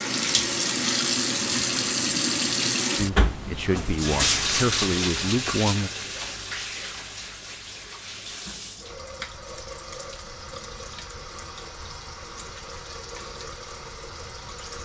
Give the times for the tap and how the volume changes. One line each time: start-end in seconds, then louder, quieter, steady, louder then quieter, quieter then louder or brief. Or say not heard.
0.0-14.8 quieter.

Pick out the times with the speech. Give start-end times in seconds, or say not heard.
3.0-5.9.